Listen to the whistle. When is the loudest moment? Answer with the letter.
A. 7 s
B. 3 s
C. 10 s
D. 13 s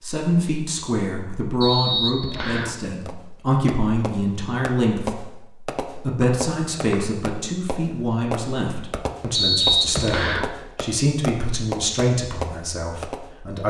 C.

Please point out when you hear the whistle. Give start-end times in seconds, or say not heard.
1.6-2.8, 6.2-7.2, 9.3-10.4.